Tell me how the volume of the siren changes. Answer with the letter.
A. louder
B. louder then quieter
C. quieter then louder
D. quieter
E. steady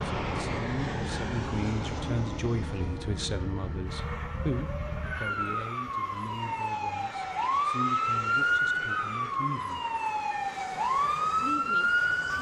A.